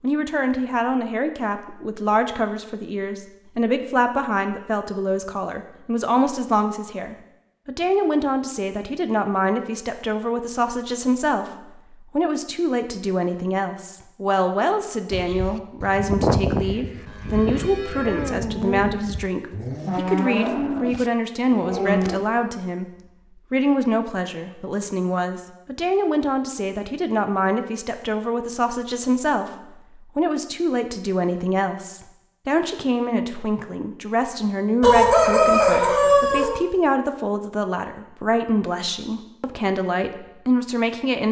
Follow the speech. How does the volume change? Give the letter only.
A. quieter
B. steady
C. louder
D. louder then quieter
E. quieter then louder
B.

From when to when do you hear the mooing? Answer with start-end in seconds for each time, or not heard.
15.1-22.3.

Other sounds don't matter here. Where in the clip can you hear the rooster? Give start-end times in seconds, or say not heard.
34.8-36.5.